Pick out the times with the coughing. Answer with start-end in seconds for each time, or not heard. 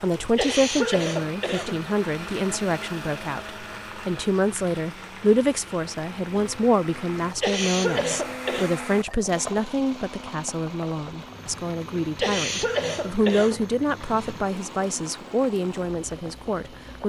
0.1-1.9, 7.2-8.7, 12.0-13.7.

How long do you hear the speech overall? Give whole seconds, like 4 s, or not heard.
17 s.